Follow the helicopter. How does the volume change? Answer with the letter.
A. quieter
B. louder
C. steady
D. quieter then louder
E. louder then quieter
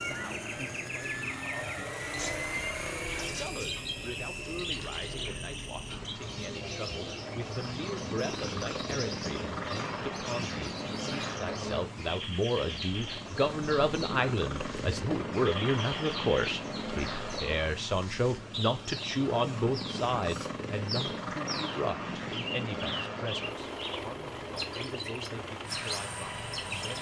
C.